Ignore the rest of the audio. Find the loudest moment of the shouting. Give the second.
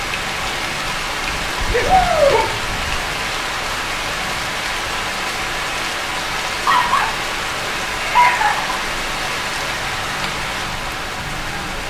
2 s.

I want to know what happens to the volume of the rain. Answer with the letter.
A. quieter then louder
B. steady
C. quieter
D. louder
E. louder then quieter
B.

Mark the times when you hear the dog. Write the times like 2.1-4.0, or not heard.
1.3-3.0, 6.7-8.6.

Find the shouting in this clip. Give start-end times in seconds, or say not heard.
1.8-2.4, 8.0-8.8.